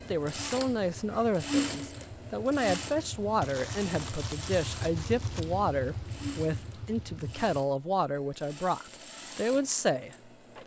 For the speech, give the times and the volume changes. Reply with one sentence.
The speech can be heard from 0.1 to 10.6 s, at a steady volume.